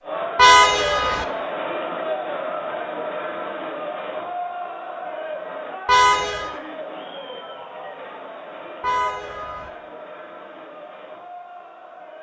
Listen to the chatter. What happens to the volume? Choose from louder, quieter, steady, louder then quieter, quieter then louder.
quieter.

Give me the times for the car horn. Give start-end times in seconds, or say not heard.
0.3-1.2, 5.8-6.5, 8.8-9.7.